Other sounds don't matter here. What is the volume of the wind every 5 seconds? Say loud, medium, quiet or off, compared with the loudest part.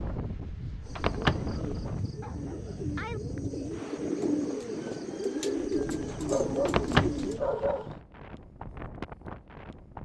loud, medium.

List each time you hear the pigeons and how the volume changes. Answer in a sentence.
You can hear the pigeons from 0.8 to 7.4 s, getting louder.